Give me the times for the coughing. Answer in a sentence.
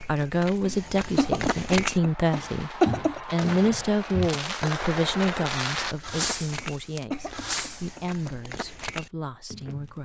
You can hear the coughing from 0.6 to 3.2 s and from 6.5 to 8.3 s.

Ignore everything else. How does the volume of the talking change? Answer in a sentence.
The loudness of the talking goes down.